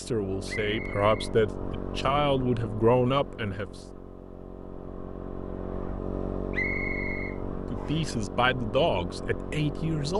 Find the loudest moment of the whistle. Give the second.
7 s.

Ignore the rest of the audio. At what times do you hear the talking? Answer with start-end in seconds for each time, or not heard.
0.0-3.6, 7.5-10.1.